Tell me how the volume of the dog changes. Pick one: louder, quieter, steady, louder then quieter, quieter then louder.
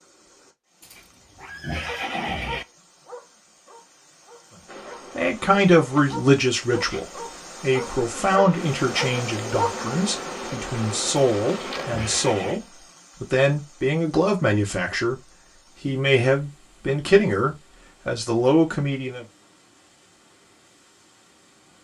quieter then louder.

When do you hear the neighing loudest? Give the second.
2 s.